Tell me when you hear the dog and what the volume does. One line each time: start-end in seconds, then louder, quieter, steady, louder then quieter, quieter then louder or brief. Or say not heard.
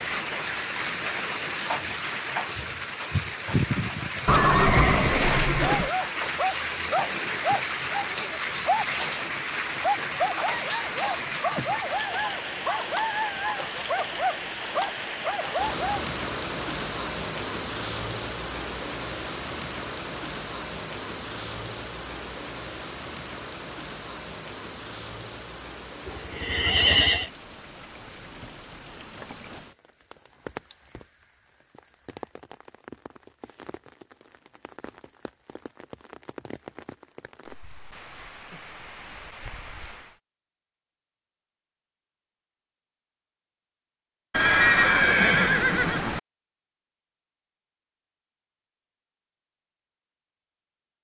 5.7-16.1 steady.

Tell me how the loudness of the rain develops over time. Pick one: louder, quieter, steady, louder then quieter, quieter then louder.
quieter.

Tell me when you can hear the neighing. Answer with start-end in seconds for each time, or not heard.
4.2-5.9, 26.1-27.3, 44.3-46.2.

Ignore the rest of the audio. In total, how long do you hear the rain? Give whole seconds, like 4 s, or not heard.
40 s.